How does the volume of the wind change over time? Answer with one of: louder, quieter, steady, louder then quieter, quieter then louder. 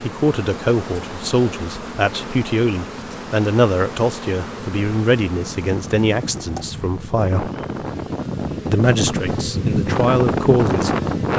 louder.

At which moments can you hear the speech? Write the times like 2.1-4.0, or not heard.
0.0-7.5, 8.7-11.3.